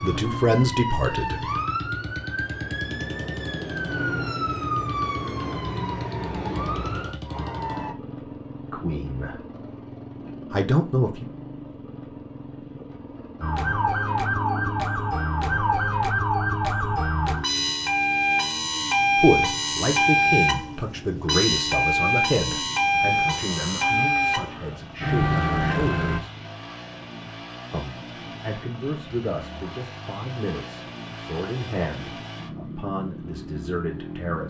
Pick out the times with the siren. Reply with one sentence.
You can hear the siren from 0.0 to 8.0 s and from 13.4 to 26.2 s.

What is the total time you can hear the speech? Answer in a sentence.
The speech can be heard for 17 seconds in total.